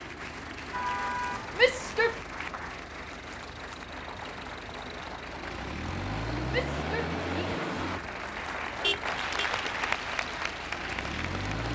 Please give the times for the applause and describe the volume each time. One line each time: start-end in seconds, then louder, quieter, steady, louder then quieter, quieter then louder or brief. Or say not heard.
0.0-11.7 louder.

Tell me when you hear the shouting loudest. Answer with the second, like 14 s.
2 s.